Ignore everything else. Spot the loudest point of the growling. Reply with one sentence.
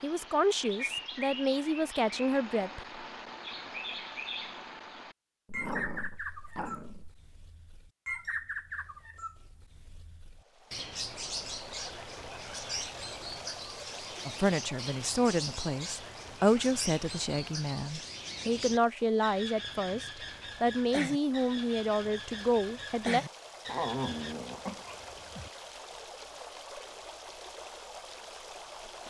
The loudest moment of the growling is at 24 seconds.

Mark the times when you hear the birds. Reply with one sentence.
You can hear the birds from 0.0 to 24.4 s.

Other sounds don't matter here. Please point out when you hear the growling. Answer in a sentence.
You can hear the growling from 5.5 to 7.2 s and from 23.6 to 25.5 s.